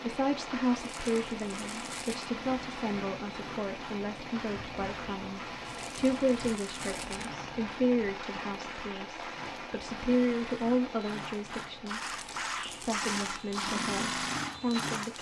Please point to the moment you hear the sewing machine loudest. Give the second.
14 s.